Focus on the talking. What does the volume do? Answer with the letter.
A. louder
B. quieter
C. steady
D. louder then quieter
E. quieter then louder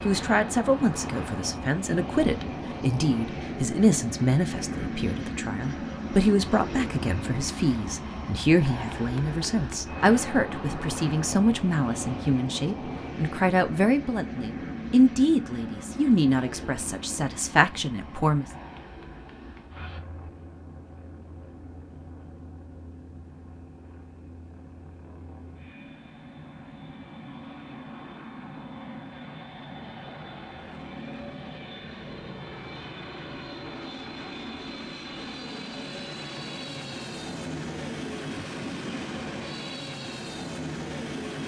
C.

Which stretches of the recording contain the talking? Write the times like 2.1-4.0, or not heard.
0.1-18.4.